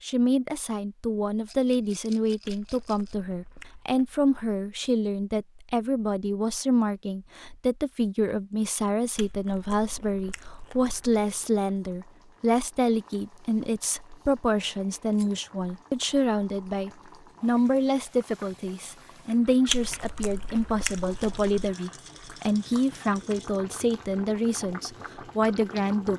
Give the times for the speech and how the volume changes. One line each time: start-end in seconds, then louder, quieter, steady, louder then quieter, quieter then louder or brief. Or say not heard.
0.0-26.1 steady.